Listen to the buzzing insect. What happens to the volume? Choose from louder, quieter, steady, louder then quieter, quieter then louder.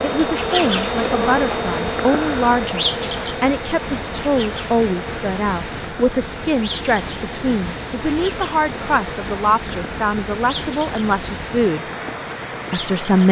quieter.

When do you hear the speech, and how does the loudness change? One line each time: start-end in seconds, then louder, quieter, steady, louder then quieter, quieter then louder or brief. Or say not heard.
0.0-11.8 steady
12.7-13.2 brief.